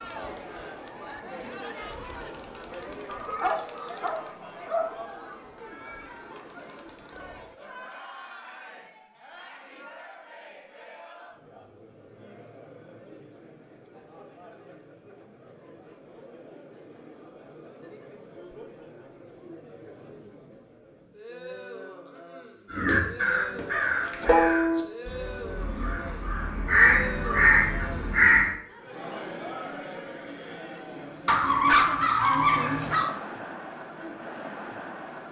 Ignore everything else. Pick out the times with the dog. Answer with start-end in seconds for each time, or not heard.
3.0-4.9, 31.2-33.1.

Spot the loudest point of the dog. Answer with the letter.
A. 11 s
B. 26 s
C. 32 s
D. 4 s
C.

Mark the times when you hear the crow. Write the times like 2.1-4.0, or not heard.
22.7-28.5.